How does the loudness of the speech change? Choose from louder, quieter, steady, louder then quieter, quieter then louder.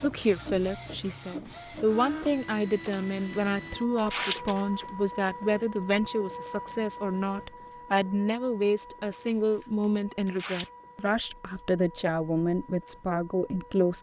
steady.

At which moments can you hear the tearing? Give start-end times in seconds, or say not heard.
2.8-4.8, 9.1-10.7.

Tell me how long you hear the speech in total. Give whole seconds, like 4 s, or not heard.
14 s.